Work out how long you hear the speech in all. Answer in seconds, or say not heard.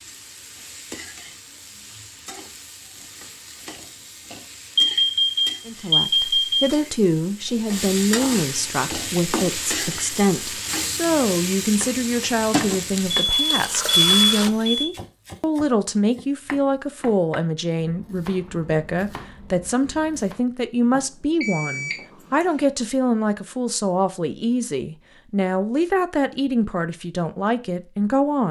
23 s.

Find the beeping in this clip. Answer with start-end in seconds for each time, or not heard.
4.8-6.7, 13.1-14.8, 20.9-21.9.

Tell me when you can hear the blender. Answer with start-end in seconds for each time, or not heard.
not heard.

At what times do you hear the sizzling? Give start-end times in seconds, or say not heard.
0.0-14.5.